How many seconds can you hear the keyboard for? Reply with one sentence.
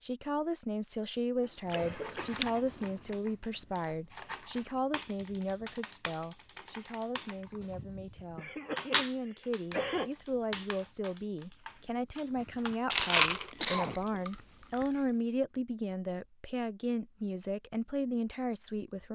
The keyboard can be heard for 11 seconds in total.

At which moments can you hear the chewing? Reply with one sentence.
The chewing can be heard from 1.6 to 3.1 s and from 12.9 to 14.9 s.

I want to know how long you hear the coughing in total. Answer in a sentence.
The coughing can be heard for 4 seconds in total.